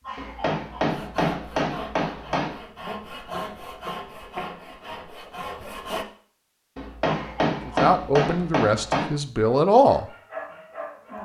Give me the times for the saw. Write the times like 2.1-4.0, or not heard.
0.8-6.0.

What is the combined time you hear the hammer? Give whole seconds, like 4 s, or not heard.
5 s.